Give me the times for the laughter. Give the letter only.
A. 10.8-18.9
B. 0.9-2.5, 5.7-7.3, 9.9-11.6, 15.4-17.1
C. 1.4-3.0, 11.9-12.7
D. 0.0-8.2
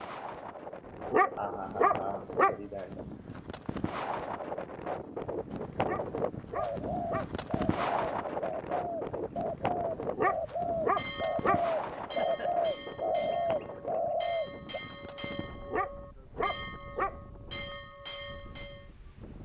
C.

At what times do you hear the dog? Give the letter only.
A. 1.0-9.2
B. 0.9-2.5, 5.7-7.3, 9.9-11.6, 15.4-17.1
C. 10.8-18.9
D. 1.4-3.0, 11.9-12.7
B.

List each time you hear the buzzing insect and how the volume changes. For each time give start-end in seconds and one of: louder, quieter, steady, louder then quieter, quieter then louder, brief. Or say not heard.
not heard.